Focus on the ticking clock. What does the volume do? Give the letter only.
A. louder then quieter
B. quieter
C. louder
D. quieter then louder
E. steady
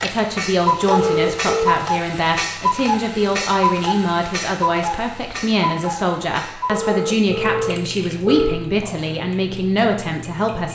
B.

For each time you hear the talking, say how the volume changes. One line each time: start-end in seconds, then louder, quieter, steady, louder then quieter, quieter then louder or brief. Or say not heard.
0.0-10.6 steady.